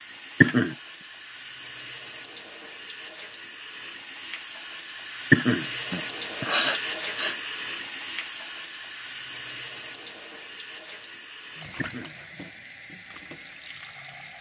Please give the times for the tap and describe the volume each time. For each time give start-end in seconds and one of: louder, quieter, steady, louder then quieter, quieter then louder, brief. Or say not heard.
0.0-14.3 louder then quieter.